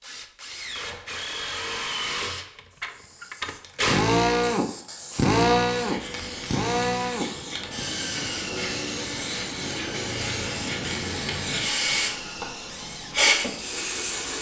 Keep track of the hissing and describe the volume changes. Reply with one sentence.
The volume of the hissing goes up.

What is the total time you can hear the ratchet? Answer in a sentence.
You can't hear the ratchet here.